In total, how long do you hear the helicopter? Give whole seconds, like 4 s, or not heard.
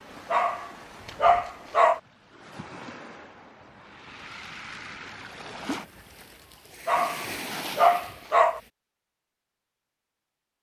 not heard.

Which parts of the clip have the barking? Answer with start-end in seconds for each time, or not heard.
0.3-2.0, 6.8-8.6.